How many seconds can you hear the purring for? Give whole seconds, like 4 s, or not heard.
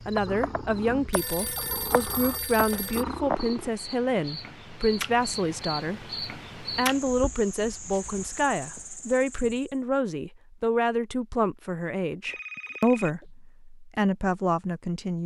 4 s.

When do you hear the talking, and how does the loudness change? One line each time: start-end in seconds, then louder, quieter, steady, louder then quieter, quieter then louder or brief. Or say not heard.
0.1-15.2 steady.